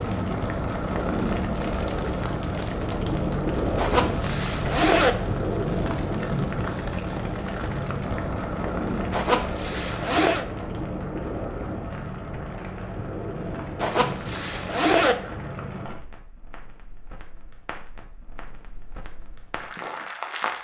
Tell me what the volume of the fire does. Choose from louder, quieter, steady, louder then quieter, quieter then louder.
quieter.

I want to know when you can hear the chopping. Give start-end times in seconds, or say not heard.
not heard.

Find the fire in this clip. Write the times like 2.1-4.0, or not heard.
0.0-20.5.